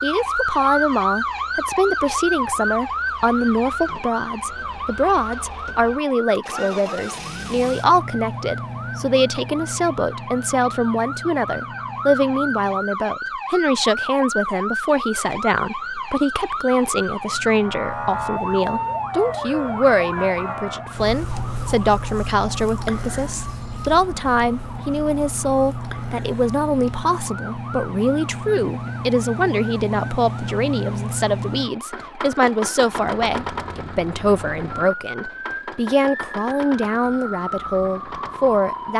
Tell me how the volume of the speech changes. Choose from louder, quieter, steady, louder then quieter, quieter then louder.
steady.